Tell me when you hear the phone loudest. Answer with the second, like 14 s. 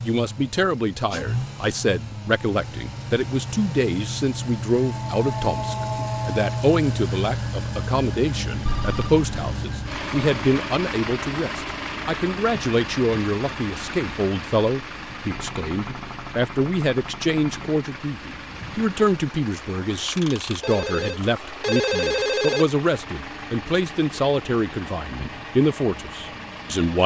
22 s.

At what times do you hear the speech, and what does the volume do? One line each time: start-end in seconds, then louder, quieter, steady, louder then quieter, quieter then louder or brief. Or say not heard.
0.0-27.0 steady.